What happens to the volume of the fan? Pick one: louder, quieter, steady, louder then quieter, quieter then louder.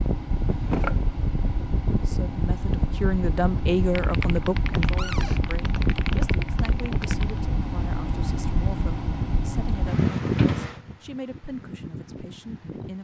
steady.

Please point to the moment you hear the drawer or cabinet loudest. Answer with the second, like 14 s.
1 s.